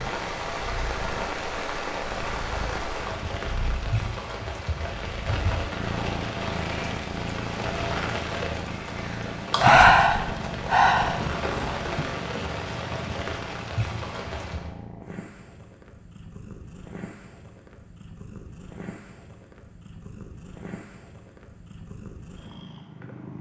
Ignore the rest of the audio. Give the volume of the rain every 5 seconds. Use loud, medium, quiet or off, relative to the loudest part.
loud, loud, loud, off, off.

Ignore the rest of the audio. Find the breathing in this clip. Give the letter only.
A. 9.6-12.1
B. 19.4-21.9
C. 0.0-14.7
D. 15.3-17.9
A.